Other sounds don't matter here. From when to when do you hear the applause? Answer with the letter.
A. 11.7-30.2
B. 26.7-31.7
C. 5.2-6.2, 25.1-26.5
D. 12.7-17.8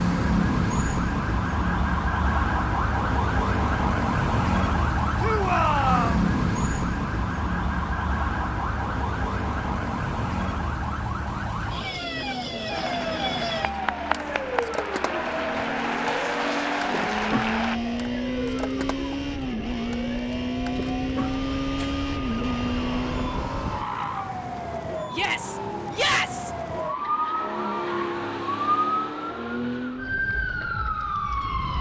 D.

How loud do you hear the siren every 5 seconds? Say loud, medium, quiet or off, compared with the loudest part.
loud, loud, medium, medium, medium, medium, loud.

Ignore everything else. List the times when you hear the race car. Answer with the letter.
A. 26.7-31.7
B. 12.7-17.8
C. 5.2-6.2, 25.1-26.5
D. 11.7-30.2
D.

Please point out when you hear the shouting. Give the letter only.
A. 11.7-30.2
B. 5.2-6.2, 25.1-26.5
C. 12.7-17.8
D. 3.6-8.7
B.